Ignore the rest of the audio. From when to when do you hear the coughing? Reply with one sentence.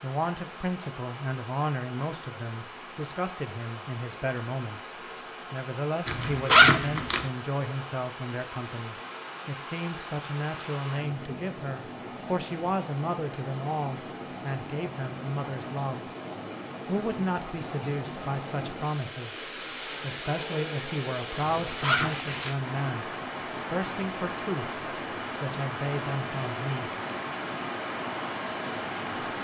The coughing can't be heard in this clip.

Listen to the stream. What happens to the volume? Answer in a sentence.
The loudness of the stream goes up.